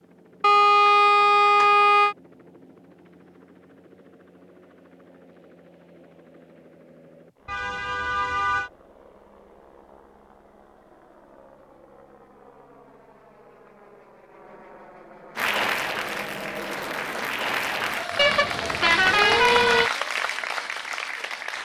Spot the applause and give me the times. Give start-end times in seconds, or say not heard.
15.3-21.6.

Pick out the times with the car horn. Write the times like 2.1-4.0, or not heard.
0.4-2.1, 7.5-8.7, 18.1-19.9.